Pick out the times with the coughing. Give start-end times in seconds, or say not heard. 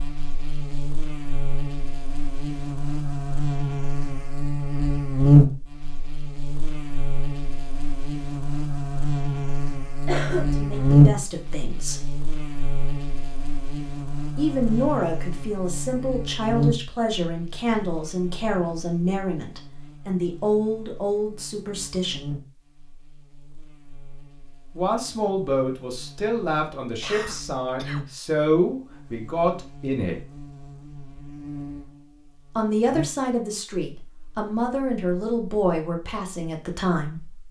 10.1-10.7, 27.0-28.2.